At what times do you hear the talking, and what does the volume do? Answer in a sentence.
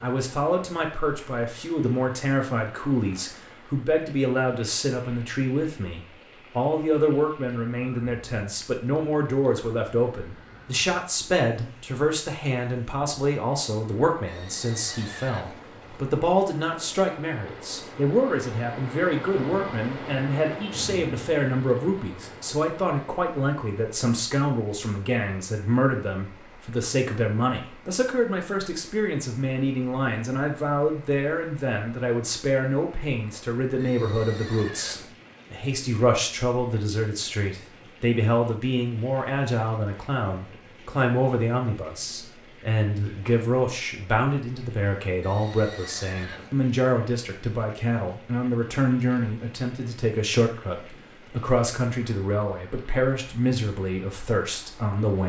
You can hear the talking from 0.0 to 55.2 s, at a steady volume.